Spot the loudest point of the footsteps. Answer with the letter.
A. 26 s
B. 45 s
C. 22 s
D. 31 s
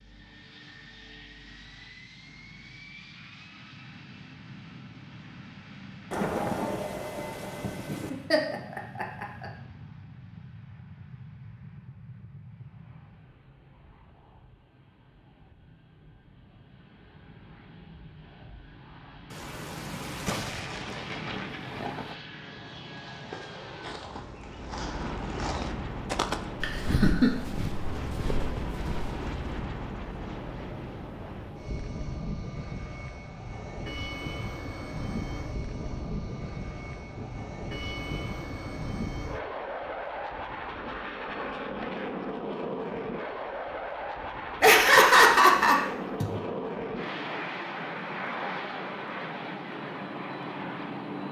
A.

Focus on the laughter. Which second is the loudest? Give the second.
45 s.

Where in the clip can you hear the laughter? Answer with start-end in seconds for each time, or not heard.
7.8-9.4, 26.6-27.3, 44.6-46.3.